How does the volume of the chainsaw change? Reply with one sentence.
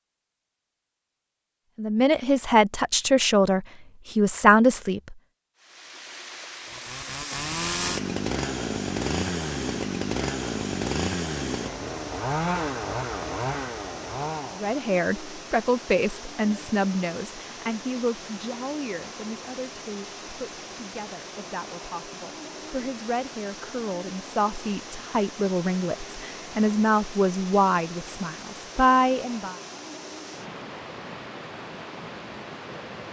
The loudness of the chainsaw stays about the same.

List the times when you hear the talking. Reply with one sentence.
The talking can be heard from 1.8 to 5.2 s and from 14.6 to 29.6 s.